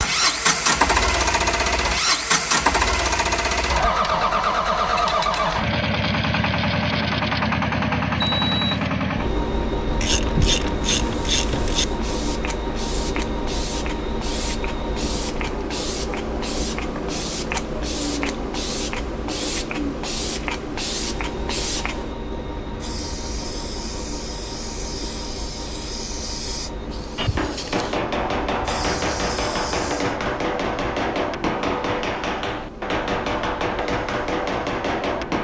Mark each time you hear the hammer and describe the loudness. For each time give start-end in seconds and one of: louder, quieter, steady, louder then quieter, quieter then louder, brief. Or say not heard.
27.1-35.3 steady.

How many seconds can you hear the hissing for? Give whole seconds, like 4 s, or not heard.
19 s.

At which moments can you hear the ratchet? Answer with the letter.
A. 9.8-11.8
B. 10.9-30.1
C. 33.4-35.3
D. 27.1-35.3
A.